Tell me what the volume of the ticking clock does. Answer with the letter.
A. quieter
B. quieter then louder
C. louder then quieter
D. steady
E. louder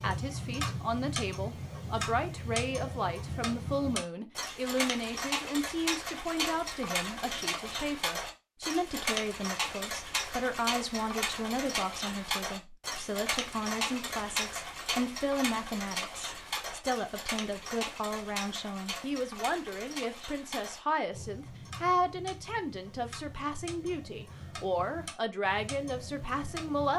A.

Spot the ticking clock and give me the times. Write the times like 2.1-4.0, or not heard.
0.0-26.9.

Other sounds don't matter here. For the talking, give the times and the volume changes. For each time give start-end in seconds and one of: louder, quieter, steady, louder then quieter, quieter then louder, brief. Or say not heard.
0.0-26.9 steady.